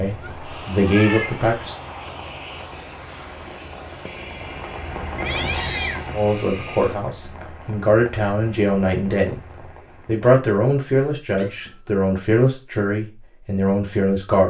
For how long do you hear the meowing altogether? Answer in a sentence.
You can hear the meowing for 3 seconds altogether.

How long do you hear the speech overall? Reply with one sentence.
You can hear the speech for 9 seconds altogether.